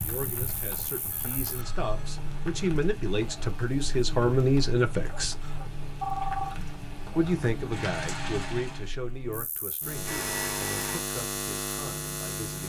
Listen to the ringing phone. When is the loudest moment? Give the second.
6 s.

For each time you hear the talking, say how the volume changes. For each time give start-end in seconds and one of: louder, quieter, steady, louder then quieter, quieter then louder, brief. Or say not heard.
0.0-5.3 louder
7.2-12.6 quieter.